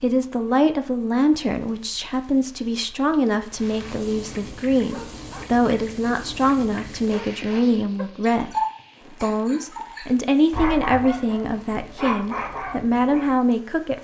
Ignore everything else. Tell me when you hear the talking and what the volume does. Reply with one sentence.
You can hear the talking from 0.0 to 13.9 s, at a steady volume.